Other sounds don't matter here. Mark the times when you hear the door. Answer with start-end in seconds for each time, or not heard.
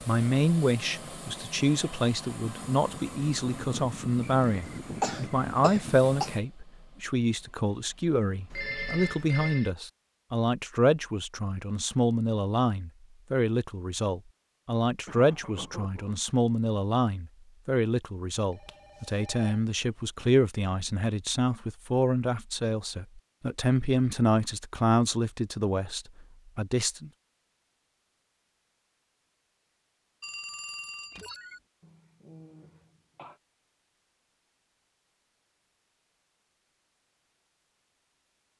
not heard.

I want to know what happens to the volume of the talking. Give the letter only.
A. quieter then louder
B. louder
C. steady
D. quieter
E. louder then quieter
C.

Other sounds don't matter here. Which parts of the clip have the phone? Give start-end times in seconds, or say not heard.
8.5-9.7, 18.5-20.1, 30.2-31.6.